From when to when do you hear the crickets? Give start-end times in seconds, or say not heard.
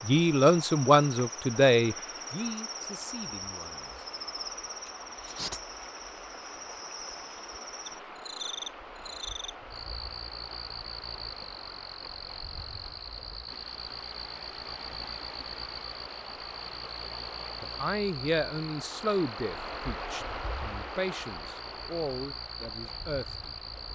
0.0-23.8.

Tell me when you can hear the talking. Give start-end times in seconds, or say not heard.
0.0-4.0, 17.6-23.6.